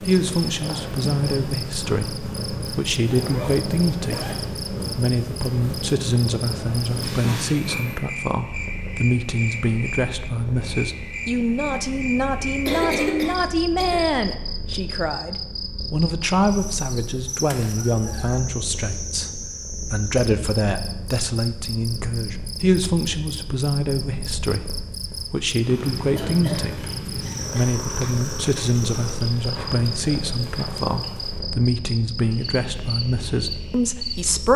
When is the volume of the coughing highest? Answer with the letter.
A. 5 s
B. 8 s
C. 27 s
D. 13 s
D.